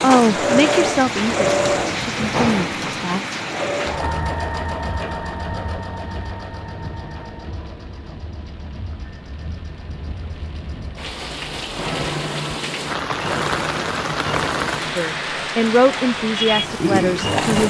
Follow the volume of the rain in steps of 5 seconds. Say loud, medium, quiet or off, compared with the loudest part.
loud, quiet, loud, loud.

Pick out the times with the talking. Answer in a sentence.
You can hear the talking from 0.0 to 3.2 s and from 14.8 to 17.6 s.